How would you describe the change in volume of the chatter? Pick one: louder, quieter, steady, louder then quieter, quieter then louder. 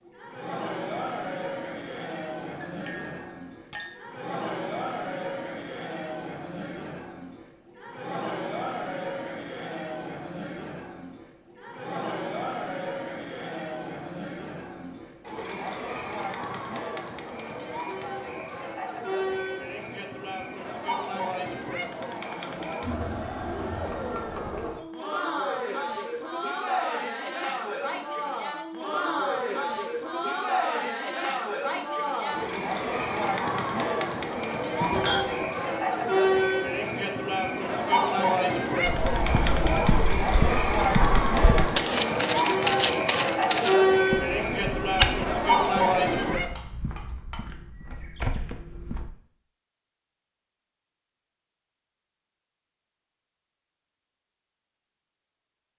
louder.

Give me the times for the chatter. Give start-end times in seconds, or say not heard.
0.1-46.5.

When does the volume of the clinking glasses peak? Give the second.
35 s.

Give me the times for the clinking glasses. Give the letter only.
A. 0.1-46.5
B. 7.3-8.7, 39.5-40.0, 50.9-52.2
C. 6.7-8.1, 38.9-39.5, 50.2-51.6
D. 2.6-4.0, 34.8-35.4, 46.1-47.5
D.